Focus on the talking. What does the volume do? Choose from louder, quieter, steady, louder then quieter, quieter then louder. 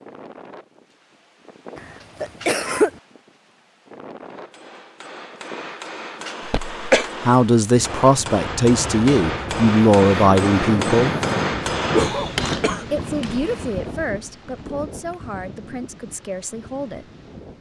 quieter.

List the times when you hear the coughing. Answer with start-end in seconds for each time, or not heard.
1.8-2.9, 6.5-7.1, 11.9-13.6.